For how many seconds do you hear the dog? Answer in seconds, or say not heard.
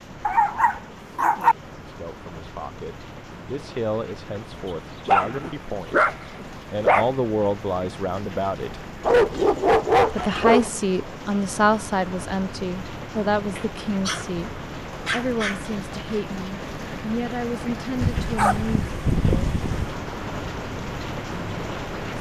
8 s.